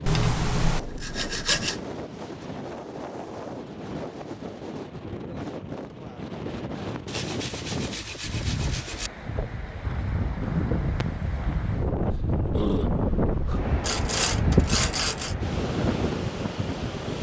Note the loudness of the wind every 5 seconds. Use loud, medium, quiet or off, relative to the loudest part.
medium, medium, loud, loud.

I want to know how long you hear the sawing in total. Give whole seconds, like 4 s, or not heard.
5 s.